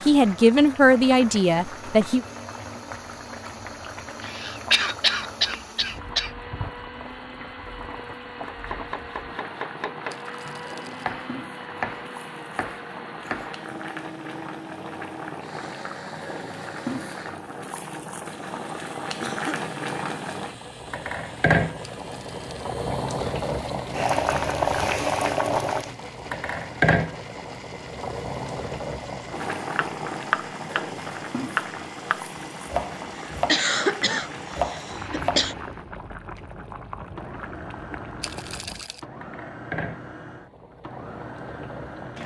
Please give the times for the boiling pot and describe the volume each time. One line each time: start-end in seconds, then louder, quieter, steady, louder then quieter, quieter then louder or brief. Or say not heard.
0.0-42.2 louder then quieter.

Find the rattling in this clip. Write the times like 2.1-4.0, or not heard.
10.1-11.2, 22.0-22.7, 38.2-39.0.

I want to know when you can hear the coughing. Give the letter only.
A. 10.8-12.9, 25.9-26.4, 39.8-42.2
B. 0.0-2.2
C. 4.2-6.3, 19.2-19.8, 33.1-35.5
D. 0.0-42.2
C.